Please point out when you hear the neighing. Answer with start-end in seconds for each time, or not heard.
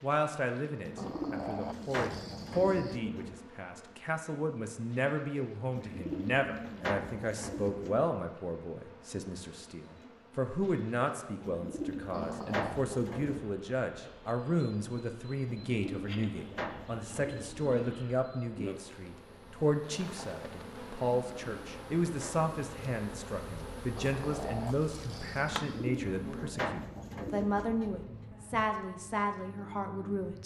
not heard.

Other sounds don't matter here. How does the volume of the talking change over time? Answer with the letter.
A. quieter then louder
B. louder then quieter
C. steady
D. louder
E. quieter
C.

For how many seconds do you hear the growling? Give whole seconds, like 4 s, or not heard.
5 s.